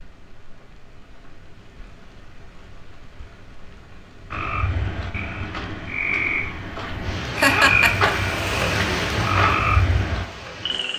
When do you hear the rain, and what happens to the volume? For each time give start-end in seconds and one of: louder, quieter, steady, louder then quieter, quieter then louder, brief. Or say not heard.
0.0-10.9 louder.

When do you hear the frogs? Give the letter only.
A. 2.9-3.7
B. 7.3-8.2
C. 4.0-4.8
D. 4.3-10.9
D.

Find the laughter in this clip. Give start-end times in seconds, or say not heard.
7.3-8.2.